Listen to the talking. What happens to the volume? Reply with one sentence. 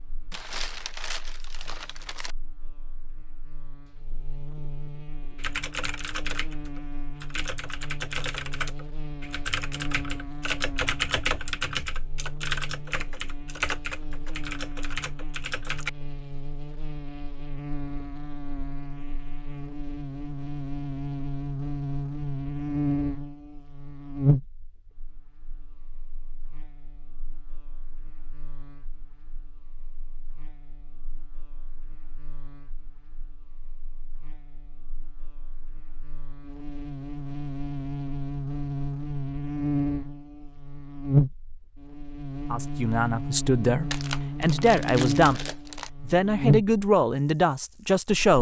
The volume of the talking stays about the same.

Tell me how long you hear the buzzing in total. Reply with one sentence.
The buzzing can be heard for 48 seconds in total.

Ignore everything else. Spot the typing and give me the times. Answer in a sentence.
You can hear the typing from 5.3 to 15.9 s.